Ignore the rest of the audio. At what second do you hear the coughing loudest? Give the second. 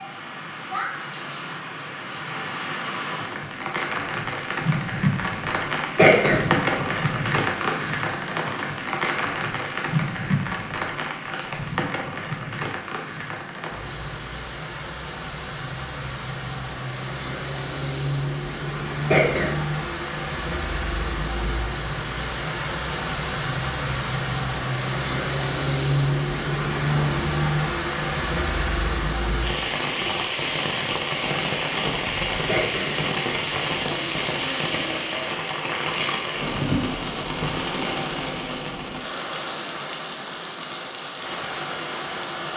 6 s.